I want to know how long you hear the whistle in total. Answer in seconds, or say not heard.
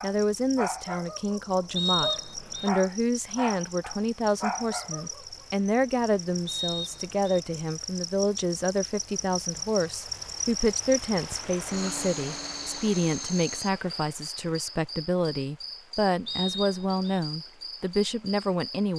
3 s.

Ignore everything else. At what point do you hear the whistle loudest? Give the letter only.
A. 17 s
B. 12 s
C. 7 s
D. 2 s
D.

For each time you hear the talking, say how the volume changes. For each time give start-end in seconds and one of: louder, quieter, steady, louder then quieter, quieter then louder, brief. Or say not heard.
0.0-18.9 steady.